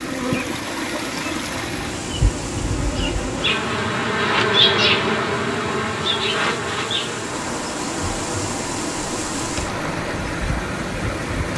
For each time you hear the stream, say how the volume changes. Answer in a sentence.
You can hear the stream from 0.0 to 11.5 s, getting quieter then louder.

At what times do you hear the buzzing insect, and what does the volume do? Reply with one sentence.
You can hear the buzzing insect from 0.0 to 11.5 s, getting louder then quieter.